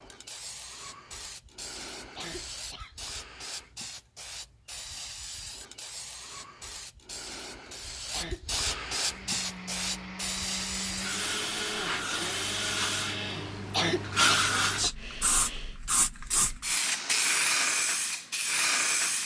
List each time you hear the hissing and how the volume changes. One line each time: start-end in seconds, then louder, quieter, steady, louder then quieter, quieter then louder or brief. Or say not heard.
0.0-19.2 louder.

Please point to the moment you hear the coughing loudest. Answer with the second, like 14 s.
14 s.